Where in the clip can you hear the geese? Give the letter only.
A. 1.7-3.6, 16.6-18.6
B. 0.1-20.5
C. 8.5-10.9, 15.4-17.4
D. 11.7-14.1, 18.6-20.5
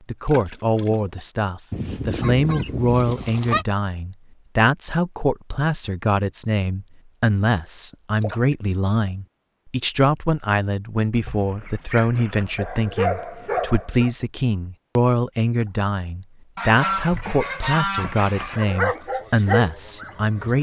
A.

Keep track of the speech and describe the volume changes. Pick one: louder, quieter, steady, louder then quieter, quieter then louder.
steady.